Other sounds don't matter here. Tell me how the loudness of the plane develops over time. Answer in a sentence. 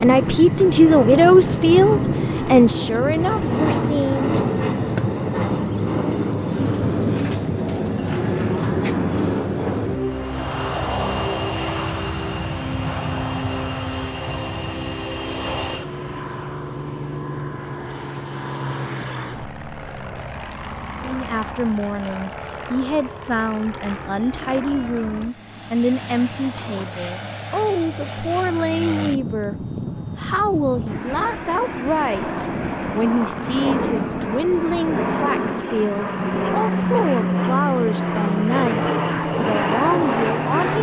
The loudness of the plane goes down, then up.